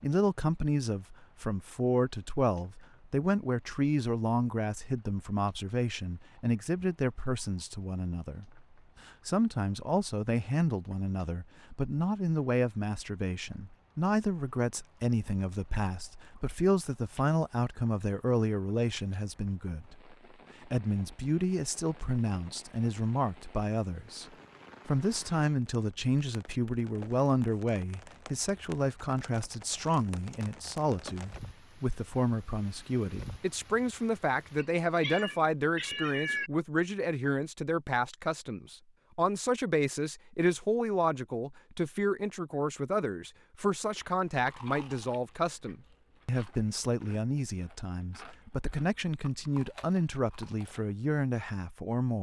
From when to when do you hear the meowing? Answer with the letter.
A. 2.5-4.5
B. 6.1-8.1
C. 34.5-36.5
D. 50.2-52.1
C.